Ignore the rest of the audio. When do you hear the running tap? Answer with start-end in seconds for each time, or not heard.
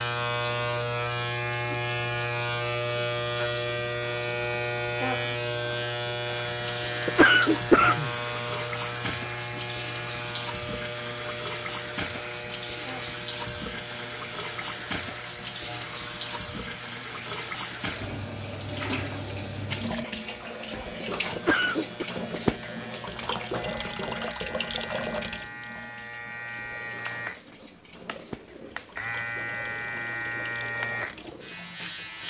0.0-32.2.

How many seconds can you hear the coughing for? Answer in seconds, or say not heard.
2 s.